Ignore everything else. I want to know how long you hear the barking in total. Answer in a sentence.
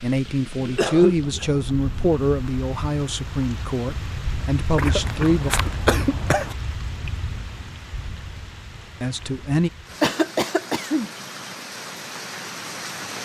The barking can't be heard in this clip.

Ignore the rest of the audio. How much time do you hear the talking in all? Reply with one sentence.
The talking can be heard for 6 seconds in total.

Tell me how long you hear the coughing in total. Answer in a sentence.
The coughing can be heard for 4 seconds in total.